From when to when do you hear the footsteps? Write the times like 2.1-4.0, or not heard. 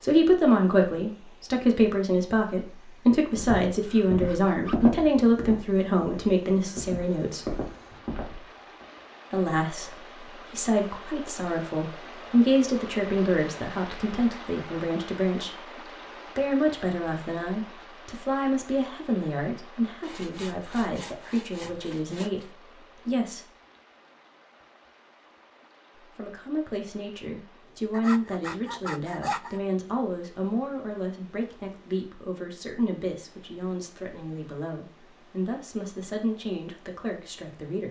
3.4-8.8.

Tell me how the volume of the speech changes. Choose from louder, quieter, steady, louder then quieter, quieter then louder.
quieter.